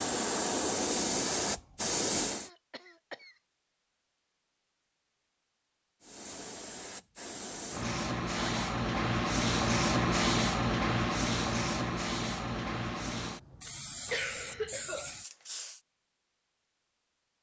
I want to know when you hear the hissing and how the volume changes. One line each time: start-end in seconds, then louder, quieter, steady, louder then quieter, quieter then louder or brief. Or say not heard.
0.0-2.5 brief
6.0-15.8 louder then quieter.